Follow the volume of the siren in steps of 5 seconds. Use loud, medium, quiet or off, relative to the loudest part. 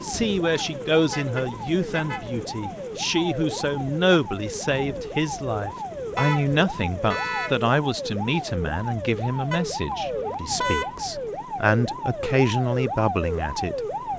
medium, loud, loud.